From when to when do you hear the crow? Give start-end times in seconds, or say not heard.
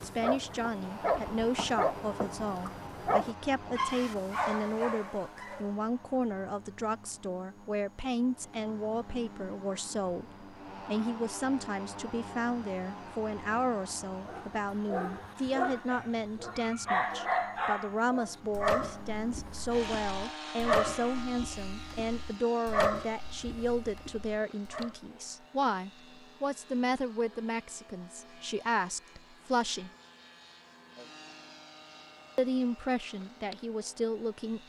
not heard.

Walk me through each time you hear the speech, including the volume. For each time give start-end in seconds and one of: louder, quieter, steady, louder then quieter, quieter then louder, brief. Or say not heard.
0.0-29.9 steady
32.4-34.6 brief.